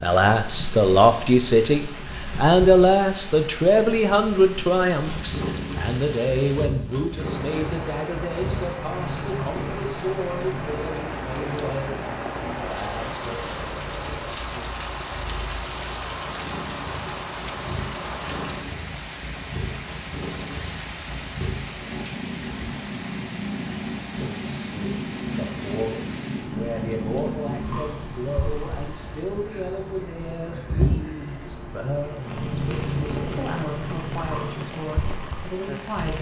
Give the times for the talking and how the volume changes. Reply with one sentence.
The talking can be heard from 0.0 to 13.3 s, getting quieter; and from 24.2 to 36.1 s, at a steady volume.